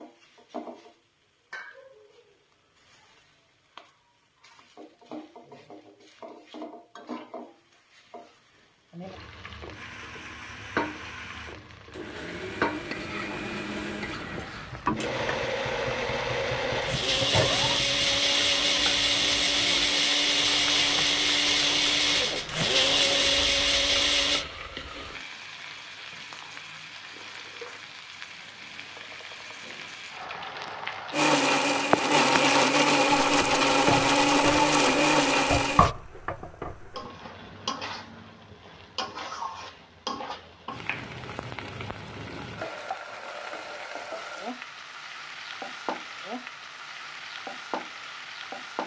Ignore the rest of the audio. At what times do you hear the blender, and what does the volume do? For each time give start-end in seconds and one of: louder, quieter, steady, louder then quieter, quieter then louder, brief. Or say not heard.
9.7-24.4 louder
31.1-35.9 steady.